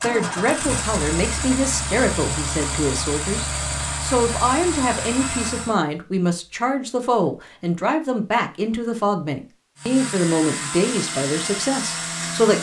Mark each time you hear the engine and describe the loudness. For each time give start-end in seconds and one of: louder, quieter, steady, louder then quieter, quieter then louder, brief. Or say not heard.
0.0-5.8 steady
9.8-12.5 brief.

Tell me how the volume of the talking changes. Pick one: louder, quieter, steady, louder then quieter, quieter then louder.
steady.